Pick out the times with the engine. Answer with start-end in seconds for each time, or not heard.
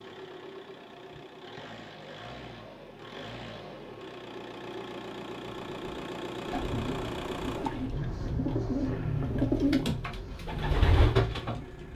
0.0-11.9.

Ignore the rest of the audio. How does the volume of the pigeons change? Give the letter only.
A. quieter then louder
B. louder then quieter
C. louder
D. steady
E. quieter
C.